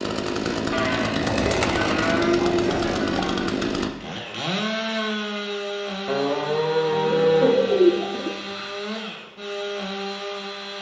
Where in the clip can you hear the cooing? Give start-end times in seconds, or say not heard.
1.2-3.2, 6.9-8.7.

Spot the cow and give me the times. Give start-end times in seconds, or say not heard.
0.7-3.6, 6.0-7.6.